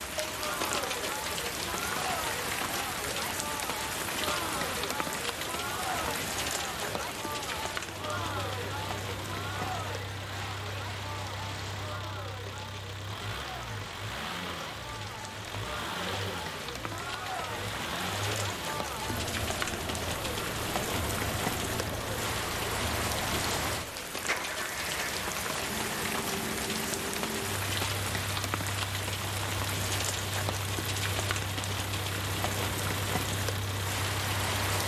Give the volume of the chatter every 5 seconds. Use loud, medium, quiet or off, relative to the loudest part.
loud, loud, medium, loud, loud, off, off.